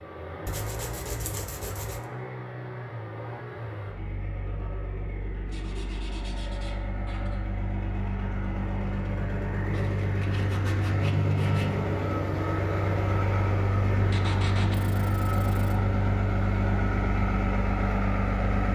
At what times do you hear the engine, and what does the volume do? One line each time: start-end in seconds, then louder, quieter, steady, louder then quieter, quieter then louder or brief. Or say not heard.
0.0-18.7 louder.